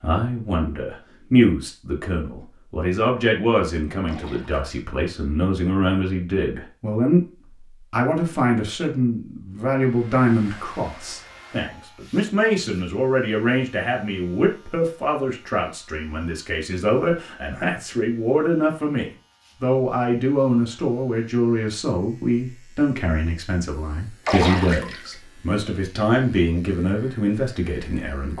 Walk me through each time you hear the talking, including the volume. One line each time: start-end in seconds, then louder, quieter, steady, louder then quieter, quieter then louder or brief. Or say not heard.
0.0-28.3 steady.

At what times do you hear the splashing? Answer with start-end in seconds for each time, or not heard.
4.0-4.7, 24.2-25.1.